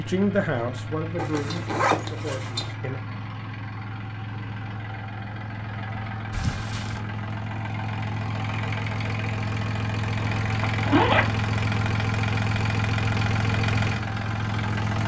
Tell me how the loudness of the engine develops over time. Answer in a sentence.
The loudness of the engine goes up.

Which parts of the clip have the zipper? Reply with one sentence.
You can hear the zipper from 1.1 to 2.7 s, from 6.3 to 7.0 s and from 10.2 to 11.6 s.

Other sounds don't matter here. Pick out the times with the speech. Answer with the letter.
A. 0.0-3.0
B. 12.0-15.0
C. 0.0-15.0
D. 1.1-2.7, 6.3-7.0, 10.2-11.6
A.